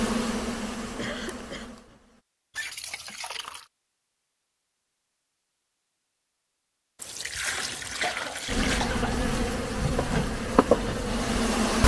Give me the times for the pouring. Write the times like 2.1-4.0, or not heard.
2.5-3.7, 7.0-8.8.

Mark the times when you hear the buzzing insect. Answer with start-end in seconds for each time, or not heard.
0.0-2.2, 8.4-11.8.